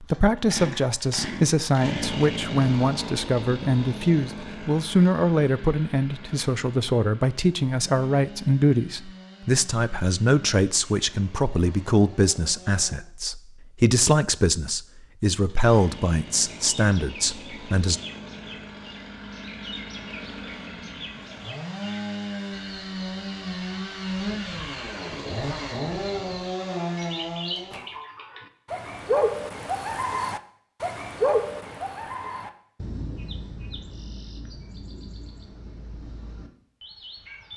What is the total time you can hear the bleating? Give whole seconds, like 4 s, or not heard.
not heard.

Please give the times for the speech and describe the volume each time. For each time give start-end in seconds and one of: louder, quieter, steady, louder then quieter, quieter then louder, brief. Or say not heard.
0.0-18.0 steady.